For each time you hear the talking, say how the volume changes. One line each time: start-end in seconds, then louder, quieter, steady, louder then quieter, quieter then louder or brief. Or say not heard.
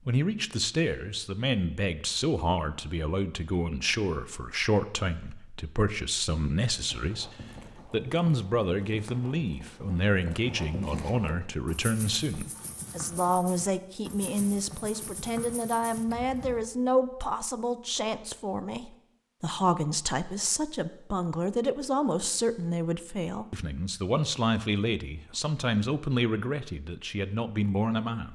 0.1-28.3 steady.